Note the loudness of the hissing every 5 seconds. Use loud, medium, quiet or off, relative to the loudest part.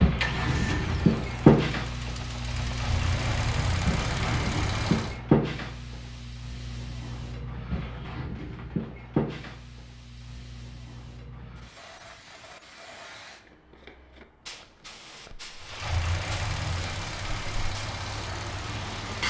loud, medium, quiet, quiet.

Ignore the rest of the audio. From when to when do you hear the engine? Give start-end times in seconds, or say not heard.
0.1-5.2, 15.6-19.2.